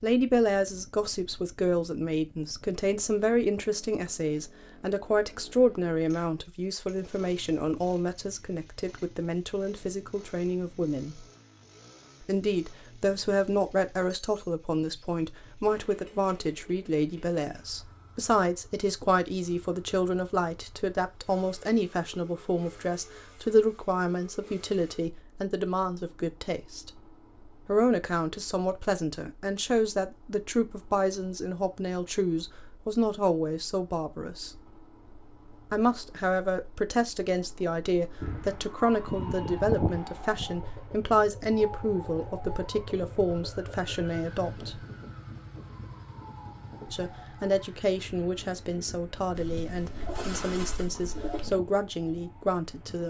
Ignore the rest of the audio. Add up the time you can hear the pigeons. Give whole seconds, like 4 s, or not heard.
2 s.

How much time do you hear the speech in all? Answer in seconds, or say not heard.
48 s.